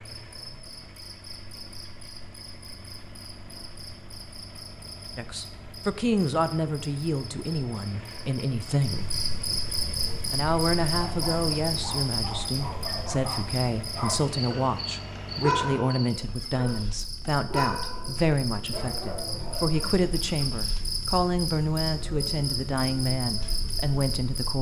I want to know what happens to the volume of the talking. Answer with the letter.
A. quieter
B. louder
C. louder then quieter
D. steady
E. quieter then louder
D.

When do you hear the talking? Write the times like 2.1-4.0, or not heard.
5.2-9.2, 10.3-24.5.